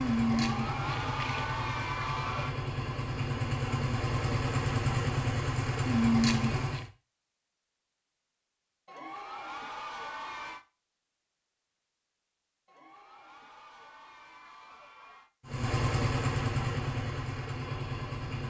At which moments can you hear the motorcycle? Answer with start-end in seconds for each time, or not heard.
0.0-6.9, 15.4-18.4.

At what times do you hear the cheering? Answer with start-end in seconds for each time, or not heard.
0.2-2.5, 8.8-10.7, 12.7-15.3.